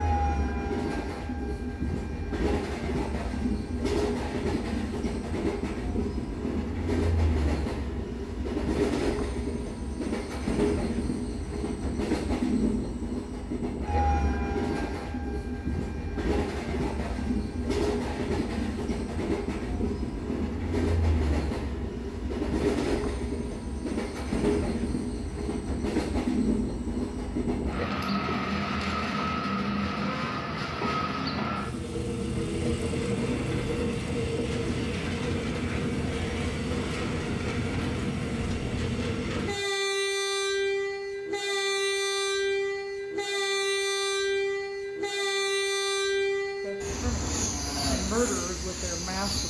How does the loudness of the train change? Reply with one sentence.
The loudness of the train stays about the same.